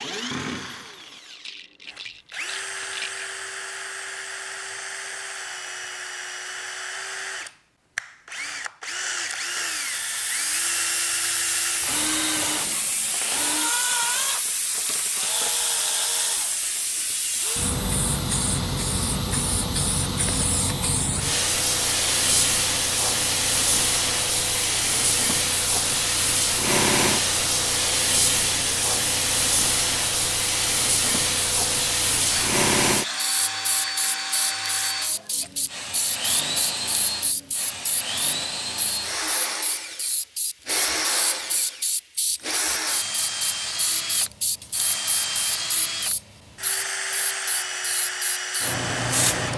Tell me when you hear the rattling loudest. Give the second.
3 s.